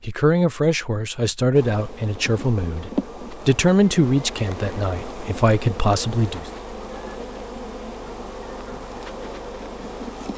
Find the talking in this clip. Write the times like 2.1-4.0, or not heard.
0.0-6.5.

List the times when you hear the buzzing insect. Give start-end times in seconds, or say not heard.
1.5-10.3.